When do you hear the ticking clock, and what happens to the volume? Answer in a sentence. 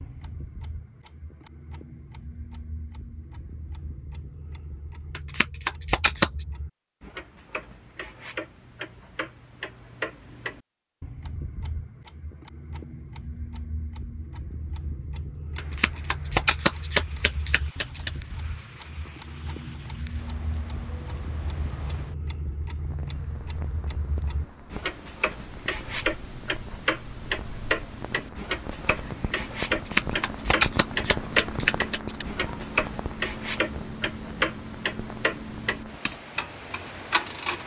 You can hear the ticking clock from 0.0 to 37.6 s, getting louder.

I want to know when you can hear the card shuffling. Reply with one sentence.
The card shuffling can be heard from 5.2 to 6.5 s, from 15.6 to 18.1 s and from 29.7 to 32.2 s.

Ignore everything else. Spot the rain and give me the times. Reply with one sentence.
You can hear the rain from 15.6 to 37.6 s.